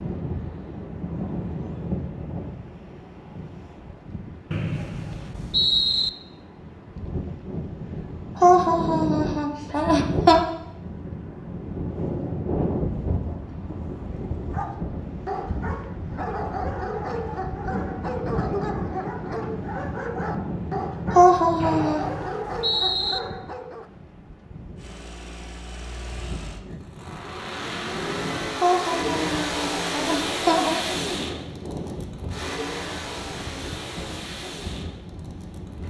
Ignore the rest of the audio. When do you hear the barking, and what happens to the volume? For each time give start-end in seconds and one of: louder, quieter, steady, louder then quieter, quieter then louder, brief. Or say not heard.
14.1-23.9 steady.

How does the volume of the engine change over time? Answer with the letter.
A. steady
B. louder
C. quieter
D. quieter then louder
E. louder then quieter
E.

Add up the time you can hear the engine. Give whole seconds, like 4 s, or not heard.
11 s.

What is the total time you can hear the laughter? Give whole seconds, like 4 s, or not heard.
5 s.